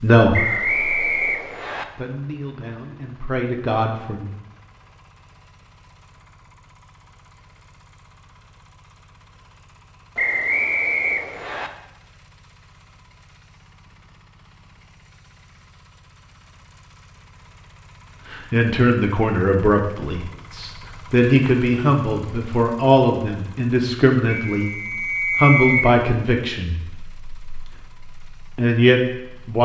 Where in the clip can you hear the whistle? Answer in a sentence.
You can hear the whistle from 0.3 to 1.9 s, from 10.2 to 11.7 s and from 24.5 to 25.9 s.